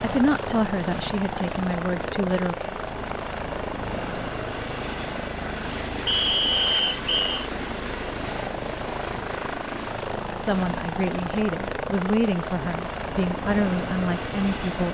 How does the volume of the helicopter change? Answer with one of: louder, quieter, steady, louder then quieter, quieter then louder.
steady.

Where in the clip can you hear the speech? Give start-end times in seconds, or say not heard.
0.0-2.5, 9.9-14.8.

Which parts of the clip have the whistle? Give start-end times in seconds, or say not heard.
6.0-7.3.